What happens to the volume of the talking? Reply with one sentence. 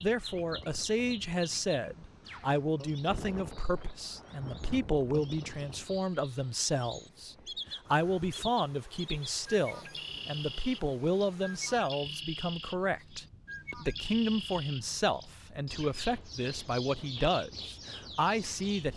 The loudness of the talking stays about the same.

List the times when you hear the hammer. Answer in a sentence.
You can't hear the hammer here.